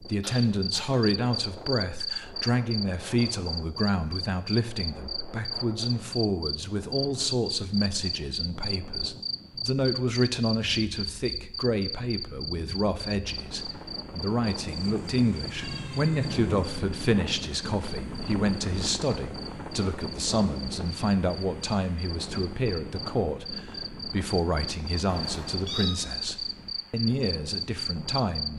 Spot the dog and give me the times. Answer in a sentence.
The dog can't be heard in this clip.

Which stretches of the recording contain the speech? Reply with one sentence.
The speech can be heard from 0.0 to 28.5 s.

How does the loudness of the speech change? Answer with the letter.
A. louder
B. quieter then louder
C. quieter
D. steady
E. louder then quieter
D.